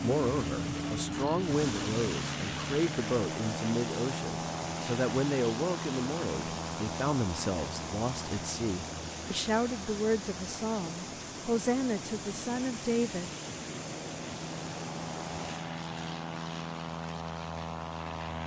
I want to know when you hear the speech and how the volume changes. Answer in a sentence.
The speech can be heard from 0.0 to 13.3 s, at a steady volume.